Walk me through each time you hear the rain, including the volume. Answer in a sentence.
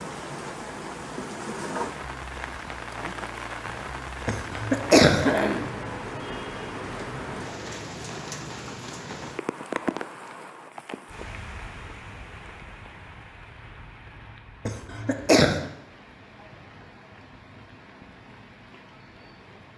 You can hear the rain from 0.0 to 19.7 s, getting quieter.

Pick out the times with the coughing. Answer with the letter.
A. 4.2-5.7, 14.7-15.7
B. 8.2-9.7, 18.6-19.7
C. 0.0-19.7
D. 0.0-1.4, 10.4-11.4
A.